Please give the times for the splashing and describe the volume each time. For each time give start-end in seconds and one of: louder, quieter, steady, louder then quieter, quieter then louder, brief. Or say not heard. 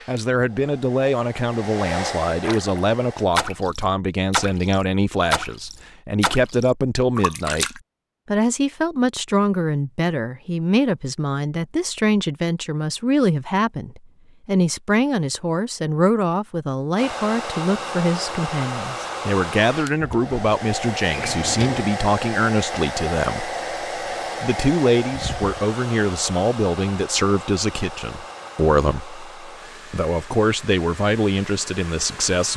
2.4-7.8 quieter.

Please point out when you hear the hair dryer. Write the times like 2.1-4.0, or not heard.
0.0-3.3, 16.9-32.5.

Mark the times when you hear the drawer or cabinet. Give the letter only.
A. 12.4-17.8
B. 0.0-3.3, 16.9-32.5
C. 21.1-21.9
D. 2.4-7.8
C.